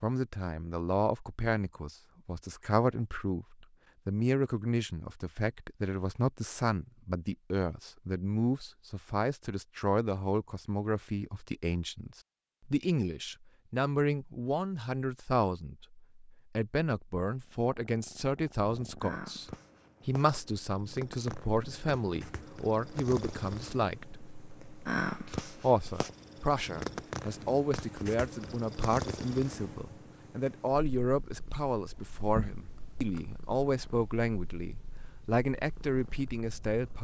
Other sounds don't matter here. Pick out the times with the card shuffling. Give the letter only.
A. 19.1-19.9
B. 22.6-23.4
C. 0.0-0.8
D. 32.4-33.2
D.